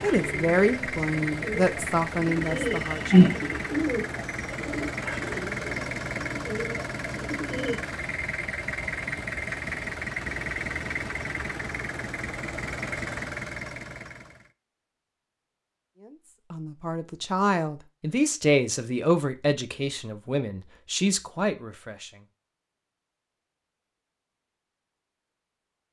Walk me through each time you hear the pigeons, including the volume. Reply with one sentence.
You can hear the pigeons from 0.0 to 7.8 s, getting louder then quieter.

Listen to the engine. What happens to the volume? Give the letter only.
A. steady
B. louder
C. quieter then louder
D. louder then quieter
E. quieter
A.